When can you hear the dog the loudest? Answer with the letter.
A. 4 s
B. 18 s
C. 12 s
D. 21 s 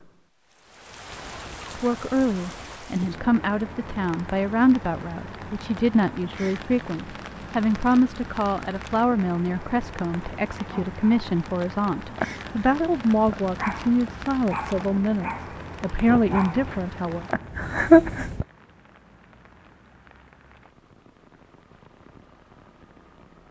B.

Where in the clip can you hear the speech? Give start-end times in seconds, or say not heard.
1.8-17.2.